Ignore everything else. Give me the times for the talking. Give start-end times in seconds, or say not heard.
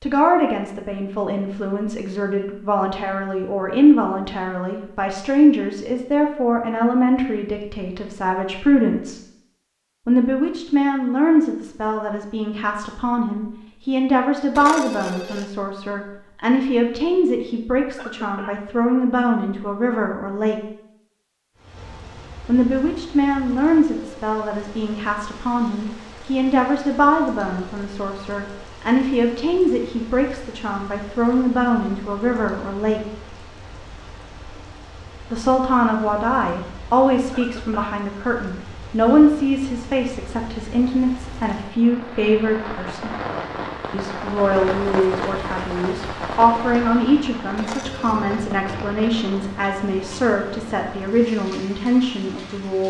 0.0-9.2, 10.1-20.6, 22.4-33.0, 35.3-43.1, 43.9-52.8.